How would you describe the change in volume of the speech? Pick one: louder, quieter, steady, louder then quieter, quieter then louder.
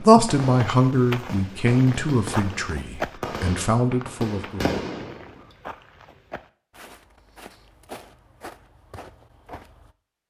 quieter then louder.